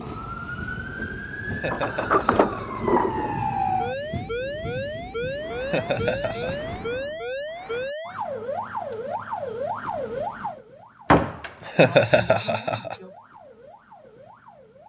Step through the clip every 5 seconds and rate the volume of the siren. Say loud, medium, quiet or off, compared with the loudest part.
loud, loud, medium.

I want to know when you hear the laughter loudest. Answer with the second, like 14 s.
12 s.